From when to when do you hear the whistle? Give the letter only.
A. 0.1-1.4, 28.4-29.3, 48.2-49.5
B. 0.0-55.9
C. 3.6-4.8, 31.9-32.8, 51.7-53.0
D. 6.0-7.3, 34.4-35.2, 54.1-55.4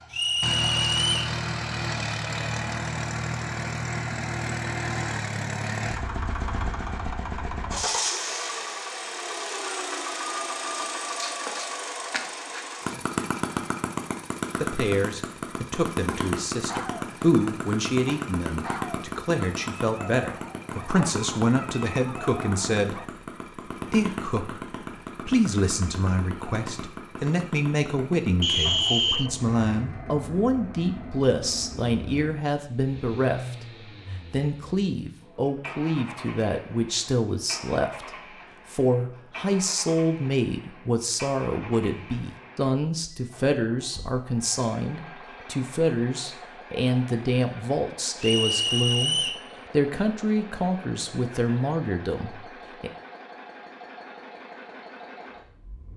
A.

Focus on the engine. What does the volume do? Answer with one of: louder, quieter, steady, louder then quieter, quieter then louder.
quieter.